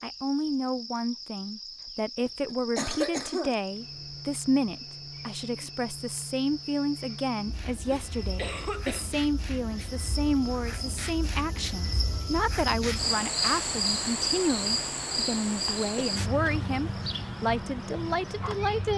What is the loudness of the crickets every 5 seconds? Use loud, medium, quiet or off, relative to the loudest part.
medium, medium, loud, loud.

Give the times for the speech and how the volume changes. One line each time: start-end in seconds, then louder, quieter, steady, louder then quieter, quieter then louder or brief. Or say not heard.
0.0-18.9 steady.